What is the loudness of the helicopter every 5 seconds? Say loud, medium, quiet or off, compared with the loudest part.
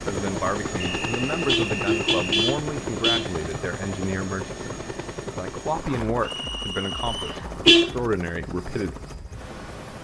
loud, medium.